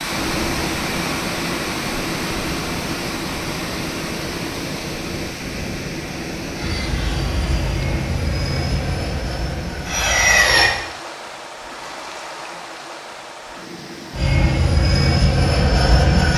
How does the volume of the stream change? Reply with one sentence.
The volume of the stream goes down.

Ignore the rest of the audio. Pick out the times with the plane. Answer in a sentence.
You can hear the plane from 6.5 to 10.7 s and from 14.1 to 16.3 s.